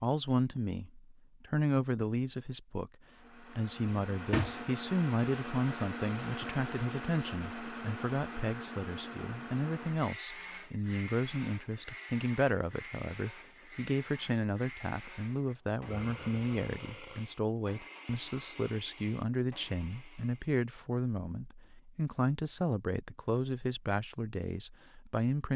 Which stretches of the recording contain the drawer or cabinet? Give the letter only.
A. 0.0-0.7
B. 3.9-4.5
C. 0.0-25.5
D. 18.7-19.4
B.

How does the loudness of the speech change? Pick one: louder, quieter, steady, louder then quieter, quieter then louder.
steady.